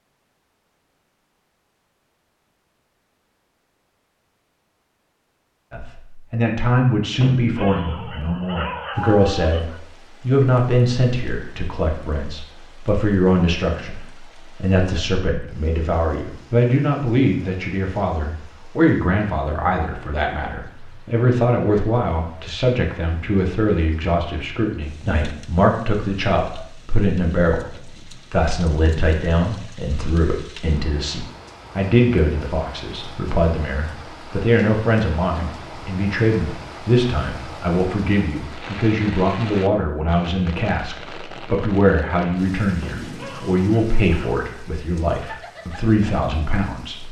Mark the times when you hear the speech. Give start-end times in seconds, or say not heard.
5.7-47.0.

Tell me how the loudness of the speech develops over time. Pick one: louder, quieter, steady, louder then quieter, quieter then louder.
steady.